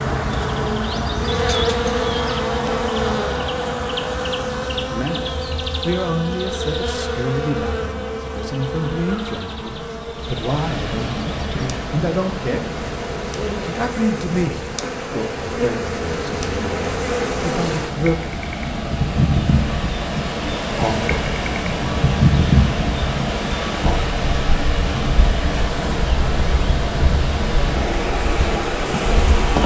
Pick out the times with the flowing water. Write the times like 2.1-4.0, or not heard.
10.2-29.6.